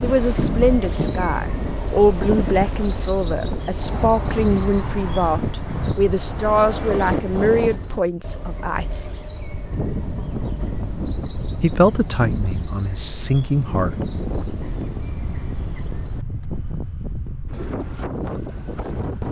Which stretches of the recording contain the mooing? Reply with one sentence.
You can't hear the mooing here.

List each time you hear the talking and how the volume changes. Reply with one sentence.
The talking can be heard from 0.0 to 9.1 s, at a steady volume; and briefly from 11.6 to 14.1 s.